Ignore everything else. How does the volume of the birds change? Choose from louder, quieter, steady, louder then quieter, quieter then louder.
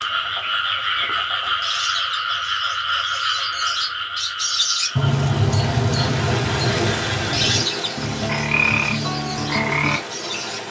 louder then quieter.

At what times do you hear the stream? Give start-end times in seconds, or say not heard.
4.8-10.6.